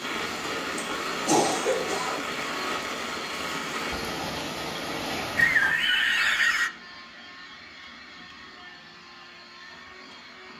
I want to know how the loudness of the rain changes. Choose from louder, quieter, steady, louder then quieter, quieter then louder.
steady.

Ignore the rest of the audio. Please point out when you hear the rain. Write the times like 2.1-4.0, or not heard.
0.0-5.8.